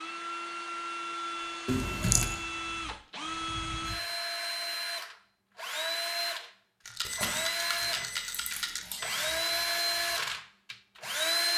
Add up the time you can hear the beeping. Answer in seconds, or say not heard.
3 s.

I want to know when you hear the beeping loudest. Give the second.
2 s.